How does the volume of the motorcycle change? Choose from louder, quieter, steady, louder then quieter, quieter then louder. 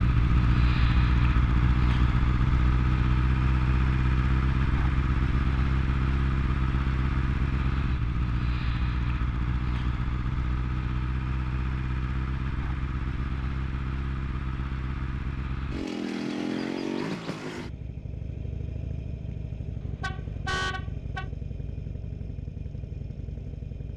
quieter.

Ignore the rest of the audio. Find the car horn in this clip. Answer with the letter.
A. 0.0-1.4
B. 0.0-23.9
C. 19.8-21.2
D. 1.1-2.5
C.